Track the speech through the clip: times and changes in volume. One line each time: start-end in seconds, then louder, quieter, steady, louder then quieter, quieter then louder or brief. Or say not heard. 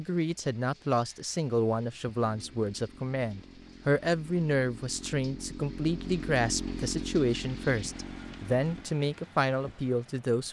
0.0-10.4 steady.